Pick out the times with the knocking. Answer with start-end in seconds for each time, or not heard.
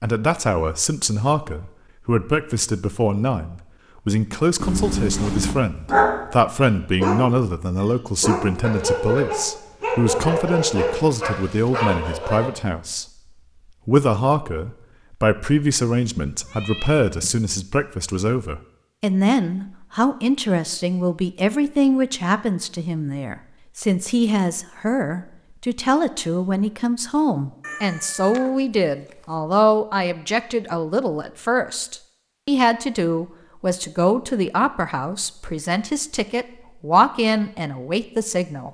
not heard.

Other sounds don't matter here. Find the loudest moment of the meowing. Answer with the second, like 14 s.
5 s.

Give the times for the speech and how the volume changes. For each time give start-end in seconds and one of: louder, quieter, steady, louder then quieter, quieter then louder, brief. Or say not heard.
0.0-13.1 steady
13.8-38.6 steady.